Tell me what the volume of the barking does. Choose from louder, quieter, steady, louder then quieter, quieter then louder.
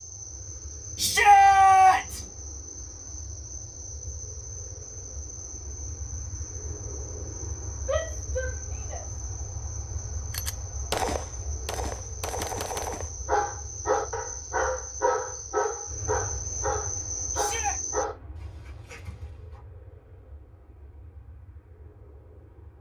quieter.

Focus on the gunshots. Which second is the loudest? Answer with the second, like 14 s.
11 s.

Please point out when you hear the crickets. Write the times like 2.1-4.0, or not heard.
0.0-18.1.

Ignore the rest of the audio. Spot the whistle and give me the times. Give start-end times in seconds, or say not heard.
not heard.